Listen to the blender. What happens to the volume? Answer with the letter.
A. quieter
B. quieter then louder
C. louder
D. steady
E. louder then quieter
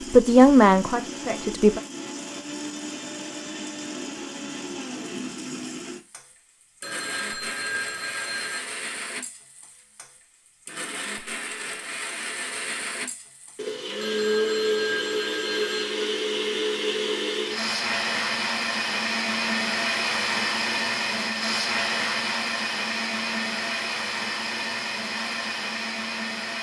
C.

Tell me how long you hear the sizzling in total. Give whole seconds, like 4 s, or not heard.
not heard.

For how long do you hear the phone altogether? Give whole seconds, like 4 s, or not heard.
4 s.